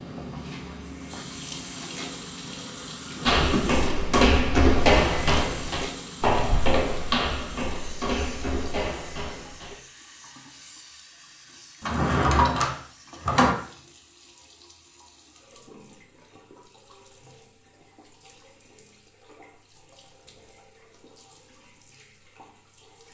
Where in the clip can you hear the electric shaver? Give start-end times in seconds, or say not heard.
not heard.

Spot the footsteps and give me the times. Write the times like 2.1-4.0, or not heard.
3.2-9.8.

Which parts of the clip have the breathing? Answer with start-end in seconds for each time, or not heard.
not heard.